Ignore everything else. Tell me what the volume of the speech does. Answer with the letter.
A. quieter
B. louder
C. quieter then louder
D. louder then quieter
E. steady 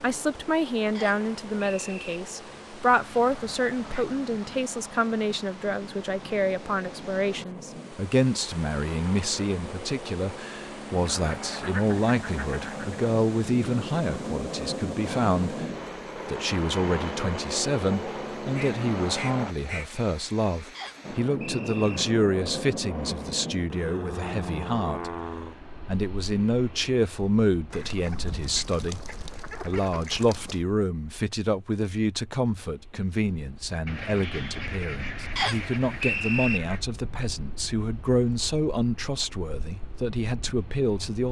E.